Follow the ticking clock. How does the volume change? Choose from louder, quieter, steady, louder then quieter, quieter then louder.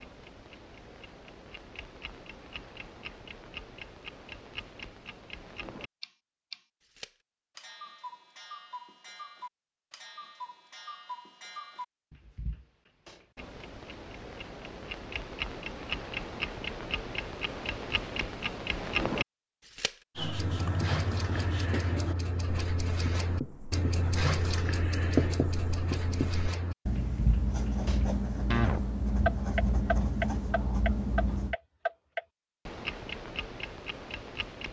louder.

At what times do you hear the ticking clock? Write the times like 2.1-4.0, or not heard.
0.0-34.6.